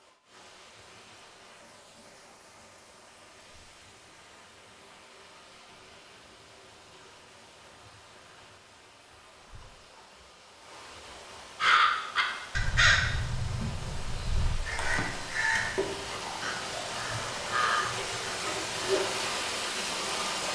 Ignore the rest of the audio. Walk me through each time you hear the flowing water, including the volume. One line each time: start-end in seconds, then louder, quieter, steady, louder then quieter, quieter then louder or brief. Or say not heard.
0.0-20.5 louder.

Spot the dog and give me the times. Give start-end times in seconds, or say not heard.
not heard.